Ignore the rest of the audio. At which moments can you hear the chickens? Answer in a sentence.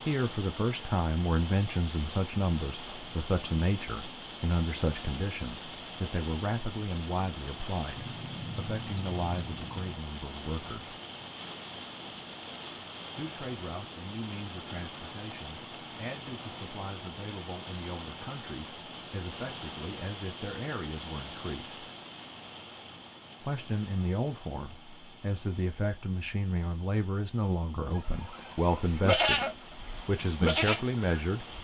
You can hear the chickens from 8.0 to 9.9 s.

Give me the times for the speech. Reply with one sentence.
The speech can be heard from 0.1 to 10.9 s, from 13.2 to 21.8 s, from 23.4 to 29.4 s and from 30.1 to 31.4 s.